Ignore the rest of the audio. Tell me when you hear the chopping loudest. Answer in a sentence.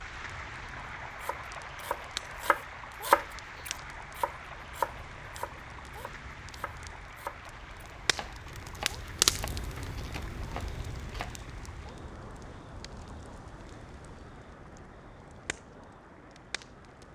The volume of the chopping peaks at 3 seconds.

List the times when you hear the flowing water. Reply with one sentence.
You can hear the flowing water from 0.0 to 17.1 s.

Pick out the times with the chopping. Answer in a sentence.
You can hear the chopping from 1.2 to 11.3 s.